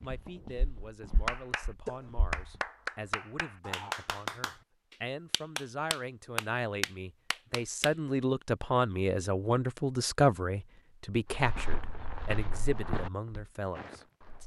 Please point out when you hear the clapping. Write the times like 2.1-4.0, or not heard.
1.2-7.9.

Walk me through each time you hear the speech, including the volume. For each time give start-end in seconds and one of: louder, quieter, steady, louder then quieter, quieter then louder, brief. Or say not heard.
0.0-14.4 louder then quieter.